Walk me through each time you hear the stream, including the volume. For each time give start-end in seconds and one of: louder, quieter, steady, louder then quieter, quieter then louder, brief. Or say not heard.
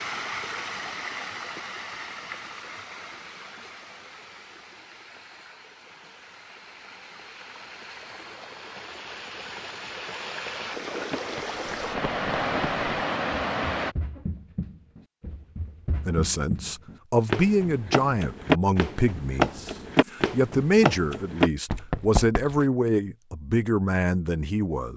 0.0-13.9 quieter then louder.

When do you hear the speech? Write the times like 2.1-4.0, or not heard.
16.1-24.9.